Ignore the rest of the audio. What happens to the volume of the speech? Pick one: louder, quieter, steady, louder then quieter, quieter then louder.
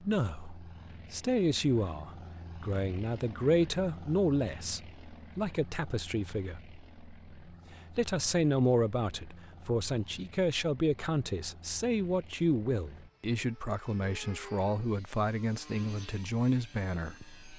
steady.